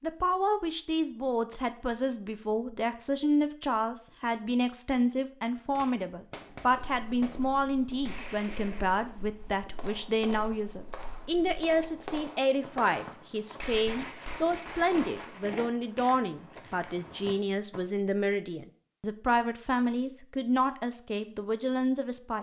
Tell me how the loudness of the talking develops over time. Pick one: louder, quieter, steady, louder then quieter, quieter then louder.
steady.